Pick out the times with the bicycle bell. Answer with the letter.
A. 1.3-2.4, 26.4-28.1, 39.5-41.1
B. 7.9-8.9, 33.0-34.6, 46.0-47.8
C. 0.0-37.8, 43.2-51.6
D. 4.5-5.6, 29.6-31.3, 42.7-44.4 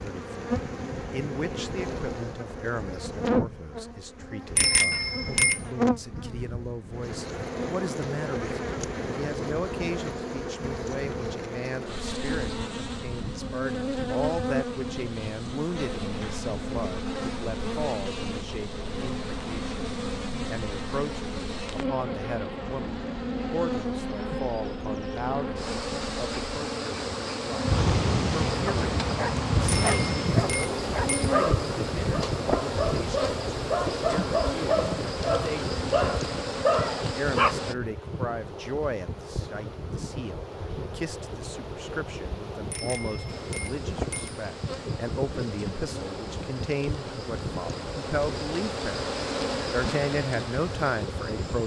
D.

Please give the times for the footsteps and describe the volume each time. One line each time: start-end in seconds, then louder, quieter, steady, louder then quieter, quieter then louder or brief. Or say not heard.
not heard.